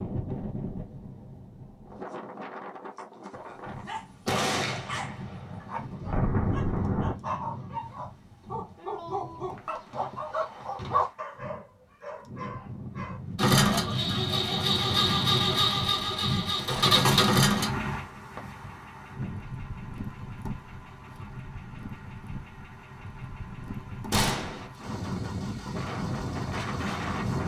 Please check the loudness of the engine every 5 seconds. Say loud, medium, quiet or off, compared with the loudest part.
off, off, loud, loud, quiet, quiet.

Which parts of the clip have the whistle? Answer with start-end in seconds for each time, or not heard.
not heard.